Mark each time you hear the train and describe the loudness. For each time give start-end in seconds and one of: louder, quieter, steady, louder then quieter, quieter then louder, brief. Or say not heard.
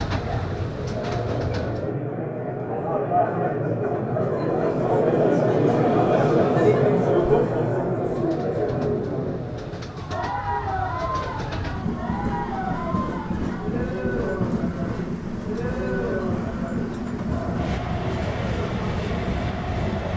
0.0-1.9 brief
8.0-20.1 louder.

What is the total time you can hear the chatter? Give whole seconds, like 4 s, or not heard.
20 s.